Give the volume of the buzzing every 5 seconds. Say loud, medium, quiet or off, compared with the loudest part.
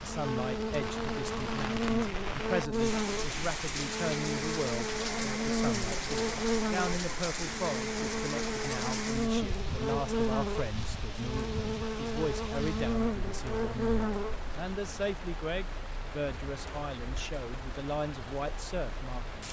loud, loud, loud, off.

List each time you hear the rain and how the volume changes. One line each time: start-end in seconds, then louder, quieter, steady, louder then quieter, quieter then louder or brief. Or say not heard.
0.0-19.4 quieter.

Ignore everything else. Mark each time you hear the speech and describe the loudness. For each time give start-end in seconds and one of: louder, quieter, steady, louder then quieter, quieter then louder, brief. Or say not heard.
0.0-19.4 steady.